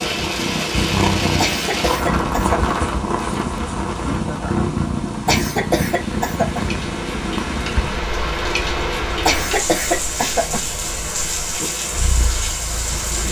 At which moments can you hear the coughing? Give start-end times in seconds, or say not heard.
1.4-2.8, 5.2-6.7, 9.2-10.7.